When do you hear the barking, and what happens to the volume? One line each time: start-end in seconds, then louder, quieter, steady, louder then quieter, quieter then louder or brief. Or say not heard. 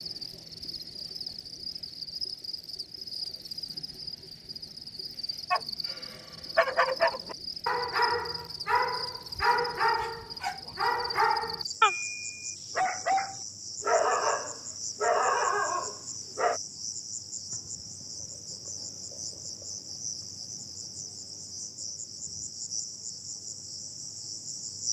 5.5-16.6 steady.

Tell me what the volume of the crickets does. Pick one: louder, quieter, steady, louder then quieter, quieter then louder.
steady.